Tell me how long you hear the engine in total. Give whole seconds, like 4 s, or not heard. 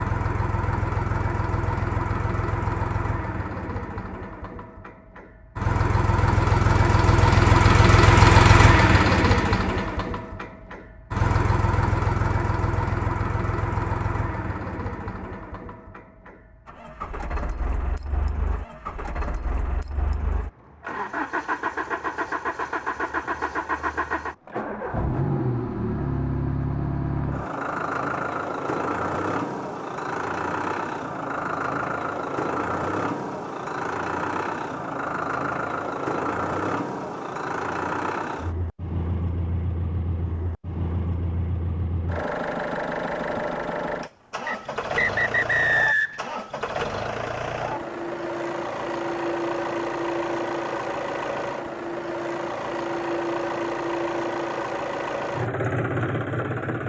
57 s.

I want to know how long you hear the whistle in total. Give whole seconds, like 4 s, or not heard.
2 s.